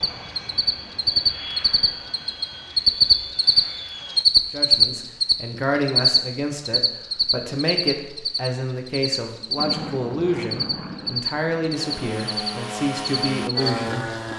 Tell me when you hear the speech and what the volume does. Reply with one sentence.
You can hear the speech from 4.5 to 14.1 s, at a steady volume.